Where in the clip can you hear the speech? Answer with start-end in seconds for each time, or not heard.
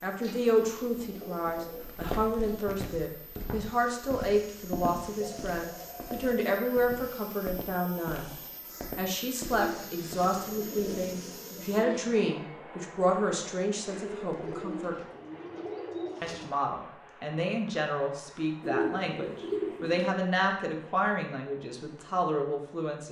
0.0-8.3, 8.9-14.9, 16.2-23.0.